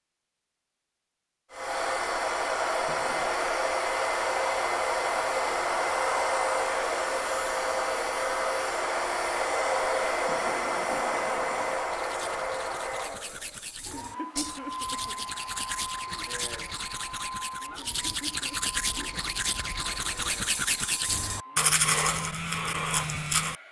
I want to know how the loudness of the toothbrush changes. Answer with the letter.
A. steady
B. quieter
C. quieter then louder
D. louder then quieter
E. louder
E.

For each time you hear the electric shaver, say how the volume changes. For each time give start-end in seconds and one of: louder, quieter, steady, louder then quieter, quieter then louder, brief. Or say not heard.
not heard.